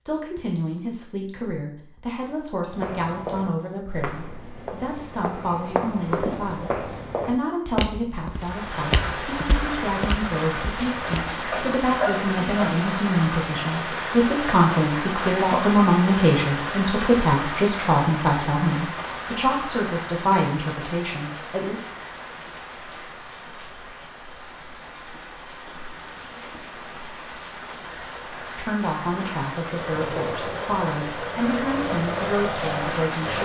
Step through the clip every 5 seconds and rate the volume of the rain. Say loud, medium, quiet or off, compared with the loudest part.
off, loud, loud, loud, medium, medium, loud.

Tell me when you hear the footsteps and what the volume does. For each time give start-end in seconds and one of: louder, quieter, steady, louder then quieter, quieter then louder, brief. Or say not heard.
2.7-11.3 louder then quieter.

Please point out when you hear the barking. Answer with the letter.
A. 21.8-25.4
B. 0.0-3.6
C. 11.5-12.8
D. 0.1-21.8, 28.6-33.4
C.